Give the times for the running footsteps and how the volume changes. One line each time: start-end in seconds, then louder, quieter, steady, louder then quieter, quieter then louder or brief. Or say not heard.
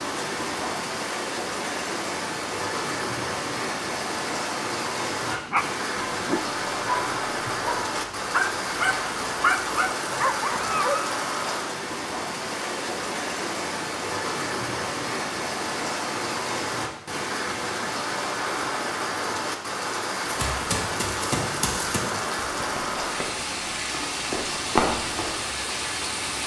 20.2-25.4 quieter then louder.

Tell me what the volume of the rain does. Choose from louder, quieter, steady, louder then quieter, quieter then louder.
steady.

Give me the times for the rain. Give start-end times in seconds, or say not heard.
0.0-26.4.